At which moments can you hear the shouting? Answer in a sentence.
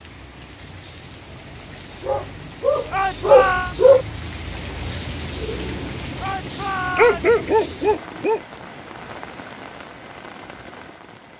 The shouting can be heard from 2.9 to 3.8 s and from 6.2 to 7.3 s.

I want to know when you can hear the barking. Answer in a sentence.
The barking can be heard from 2.0 to 4.0 s and from 7.0 to 8.4 s.